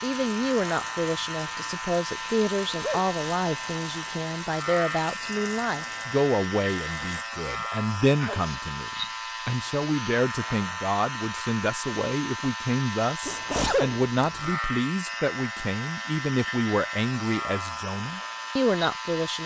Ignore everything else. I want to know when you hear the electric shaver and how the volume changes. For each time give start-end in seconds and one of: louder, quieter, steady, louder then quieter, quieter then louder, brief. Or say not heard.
0.0-19.4 steady.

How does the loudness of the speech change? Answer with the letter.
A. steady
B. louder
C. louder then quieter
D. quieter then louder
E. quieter
A.